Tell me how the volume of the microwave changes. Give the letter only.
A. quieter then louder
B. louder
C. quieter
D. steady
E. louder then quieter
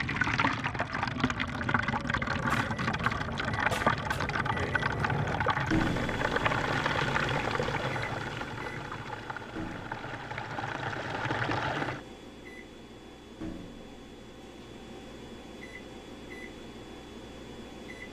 C.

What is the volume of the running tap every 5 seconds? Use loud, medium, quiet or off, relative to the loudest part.
loud, loud, loud, off.